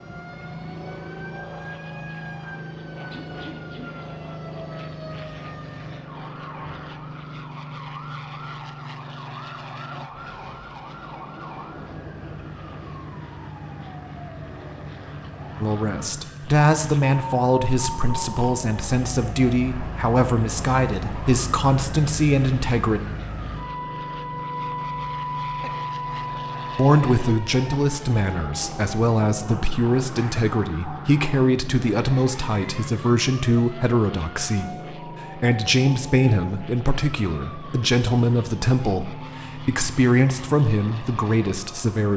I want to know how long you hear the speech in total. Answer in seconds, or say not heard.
23 s.